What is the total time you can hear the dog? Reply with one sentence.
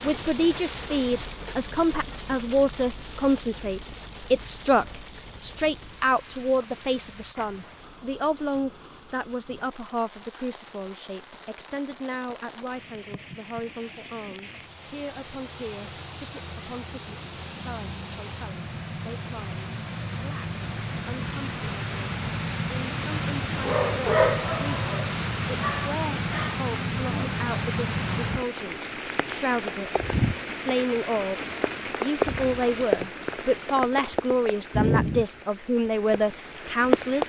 You can hear the dog for 3 seconds altogether.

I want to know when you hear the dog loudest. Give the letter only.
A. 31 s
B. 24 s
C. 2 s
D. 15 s
B.